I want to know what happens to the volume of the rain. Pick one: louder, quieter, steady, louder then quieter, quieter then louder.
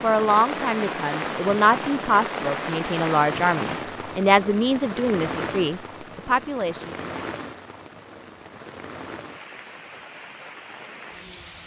quieter.